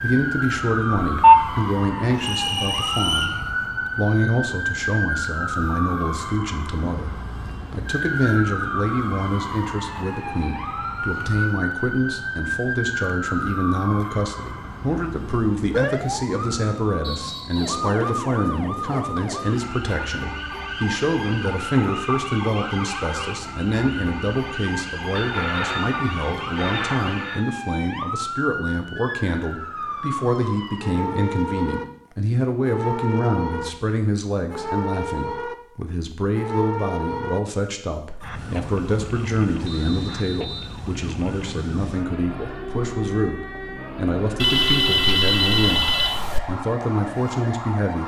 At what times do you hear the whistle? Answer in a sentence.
You can hear the whistle from 2.1 to 3.4 s, from 17.0 to 17.9 s and from 39.6 to 40.8 s.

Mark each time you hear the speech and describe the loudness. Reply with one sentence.
You can hear the speech from 0.0 to 48.0 s, at a steady volume.